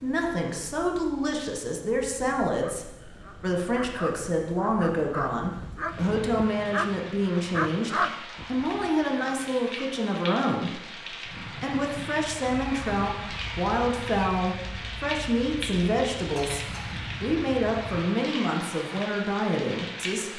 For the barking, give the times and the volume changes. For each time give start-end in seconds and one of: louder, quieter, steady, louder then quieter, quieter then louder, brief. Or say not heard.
2.6-9.8 louder then quieter.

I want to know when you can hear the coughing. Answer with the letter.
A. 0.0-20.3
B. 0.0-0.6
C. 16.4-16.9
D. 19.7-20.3
C.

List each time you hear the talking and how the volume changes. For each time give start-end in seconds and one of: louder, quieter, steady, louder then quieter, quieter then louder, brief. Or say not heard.
0.0-20.3 steady.